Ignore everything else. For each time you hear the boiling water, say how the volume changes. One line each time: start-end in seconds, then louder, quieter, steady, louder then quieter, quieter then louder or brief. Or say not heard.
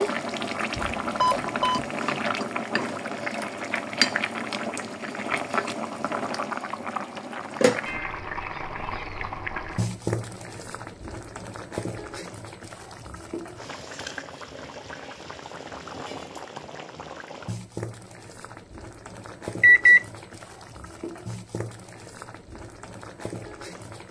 0.0-24.0 quieter.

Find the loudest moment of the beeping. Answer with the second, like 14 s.
20 s.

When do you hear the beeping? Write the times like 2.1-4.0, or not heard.
0.8-1.8, 19.6-20.1.